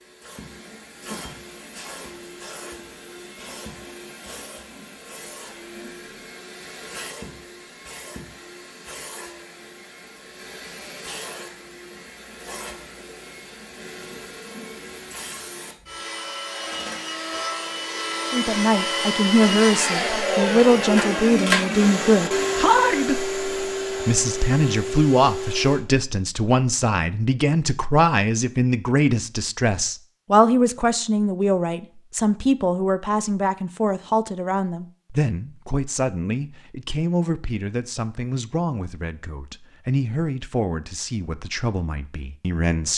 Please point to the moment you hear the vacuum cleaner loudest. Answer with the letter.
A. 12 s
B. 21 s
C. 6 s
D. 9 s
B.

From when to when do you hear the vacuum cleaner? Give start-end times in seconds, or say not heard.
0.0-25.8.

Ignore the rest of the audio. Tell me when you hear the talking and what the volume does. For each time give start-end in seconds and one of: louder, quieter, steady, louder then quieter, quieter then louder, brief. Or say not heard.
18.3-42.9 quieter.